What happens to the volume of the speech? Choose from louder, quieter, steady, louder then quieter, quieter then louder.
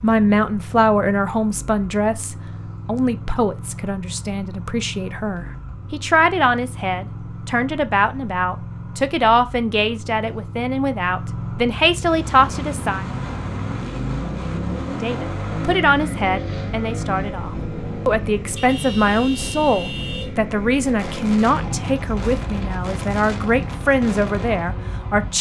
steady.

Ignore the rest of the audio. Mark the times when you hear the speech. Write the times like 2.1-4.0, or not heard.
0.0-13.1, 14.9-25.3.